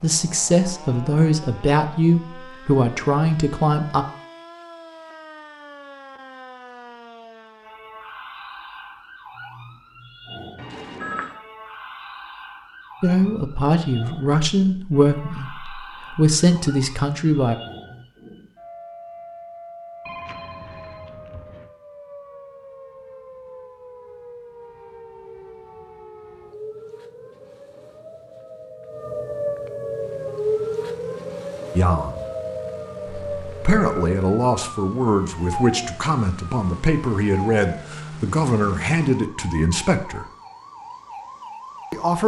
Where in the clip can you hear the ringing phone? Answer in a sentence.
You can hear the ringing phone from 10.6 to 11.3 s, from 20.1 to 21.7 s and from 33.0 to 34.1 s.